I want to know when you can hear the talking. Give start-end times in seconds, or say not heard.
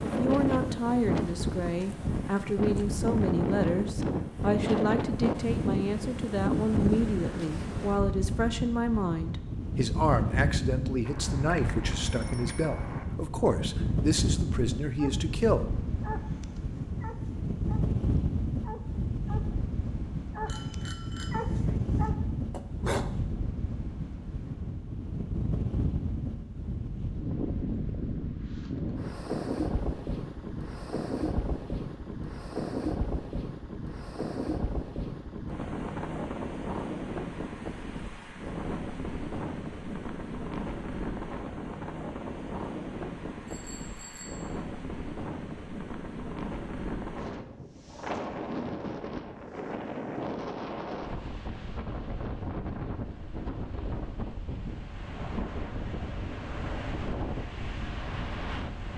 0.0-15.7.